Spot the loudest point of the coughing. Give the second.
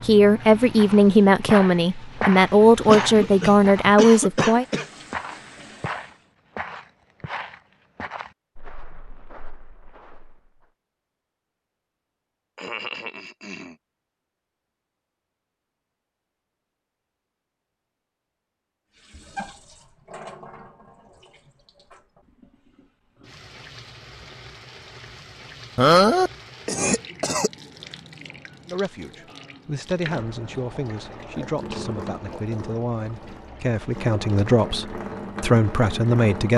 26 s.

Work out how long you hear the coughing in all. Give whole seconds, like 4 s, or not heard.
5 s.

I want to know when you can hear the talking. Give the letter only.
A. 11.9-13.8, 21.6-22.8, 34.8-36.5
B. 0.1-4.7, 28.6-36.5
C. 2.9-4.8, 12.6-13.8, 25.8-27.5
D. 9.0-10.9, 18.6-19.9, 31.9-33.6
B.